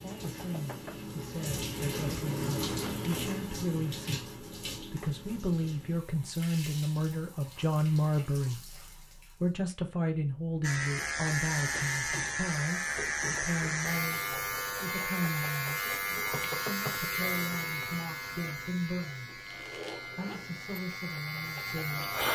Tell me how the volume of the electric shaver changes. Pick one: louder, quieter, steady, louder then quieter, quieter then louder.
quieter.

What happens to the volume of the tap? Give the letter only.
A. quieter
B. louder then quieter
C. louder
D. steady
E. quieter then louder
A.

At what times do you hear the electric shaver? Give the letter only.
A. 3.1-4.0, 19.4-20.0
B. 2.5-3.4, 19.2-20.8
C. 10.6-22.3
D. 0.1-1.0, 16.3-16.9
C.